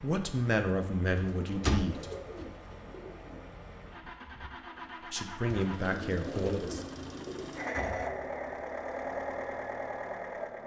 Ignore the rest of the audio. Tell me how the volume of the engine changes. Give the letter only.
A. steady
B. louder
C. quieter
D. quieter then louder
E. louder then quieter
B.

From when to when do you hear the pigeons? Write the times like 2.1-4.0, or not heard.
1.1-3.5, 5.5-8.0.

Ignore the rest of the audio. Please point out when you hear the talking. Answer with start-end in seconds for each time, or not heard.
0.0-2.1, 5.1-6.8.